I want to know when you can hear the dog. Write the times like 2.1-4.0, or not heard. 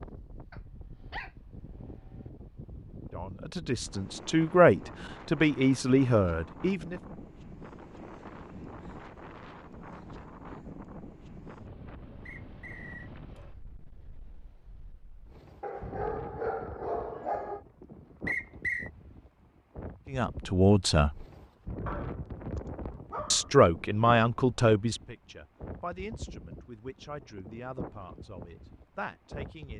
0.5-2.3, 15.6-17.6, 21.9-23.5.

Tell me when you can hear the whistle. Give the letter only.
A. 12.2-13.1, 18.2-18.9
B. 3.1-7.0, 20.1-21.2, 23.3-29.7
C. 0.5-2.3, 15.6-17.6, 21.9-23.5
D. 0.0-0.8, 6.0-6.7
A.